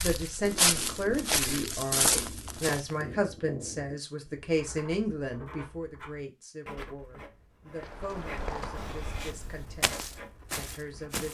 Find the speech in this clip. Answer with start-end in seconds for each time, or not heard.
0.0-11.2.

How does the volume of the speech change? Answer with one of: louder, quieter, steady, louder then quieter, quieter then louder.
quieter.